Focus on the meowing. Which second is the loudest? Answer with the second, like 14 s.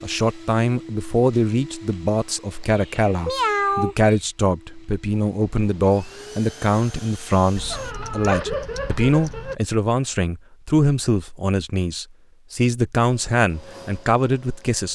4 s.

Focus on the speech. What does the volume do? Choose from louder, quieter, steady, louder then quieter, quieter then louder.
steady.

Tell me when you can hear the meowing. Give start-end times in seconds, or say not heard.
2.6-4.2, 7.5-9.6.